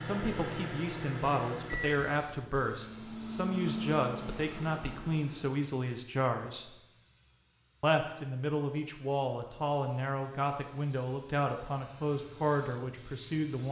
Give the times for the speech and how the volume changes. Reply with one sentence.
You can hear the speech from 0.0 to 6.8 s, at a steady volume; and from 7.8 to 13.6 s, at a steady volume.